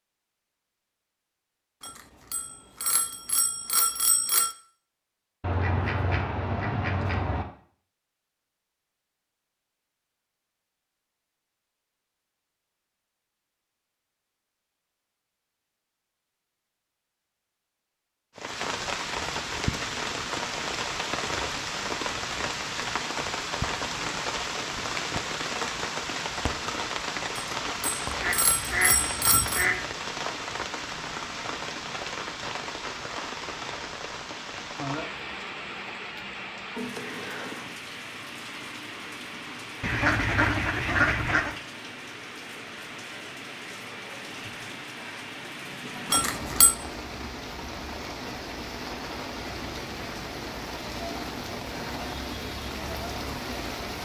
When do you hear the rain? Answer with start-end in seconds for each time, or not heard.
18.4-54.0.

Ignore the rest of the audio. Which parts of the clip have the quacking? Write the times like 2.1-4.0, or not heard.
5.4-7.5, 28.1-29.9, 39.8-41.5.